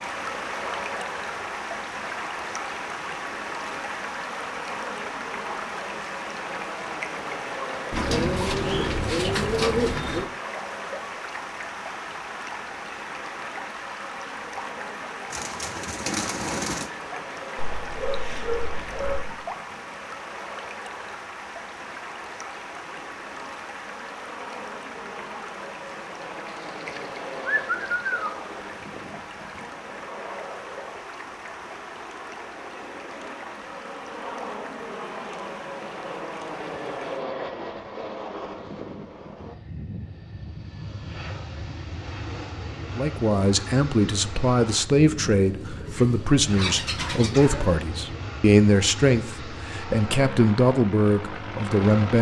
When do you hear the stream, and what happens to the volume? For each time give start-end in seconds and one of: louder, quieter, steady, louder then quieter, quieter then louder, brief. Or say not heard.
0.0-37.2 quieter.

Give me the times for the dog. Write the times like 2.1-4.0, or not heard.
17.6-19.4, 46.5-47.6.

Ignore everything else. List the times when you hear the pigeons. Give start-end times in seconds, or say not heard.
7.9-10.2, 15.3-16.9, 26.4-28.3, 45.0-47.6.